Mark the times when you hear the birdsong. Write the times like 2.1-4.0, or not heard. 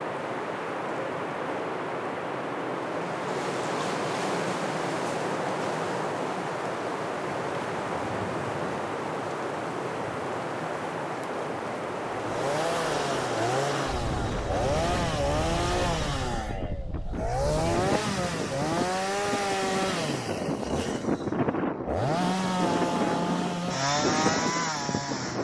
not heard.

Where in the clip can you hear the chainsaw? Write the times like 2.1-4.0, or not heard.
12.1-25.3.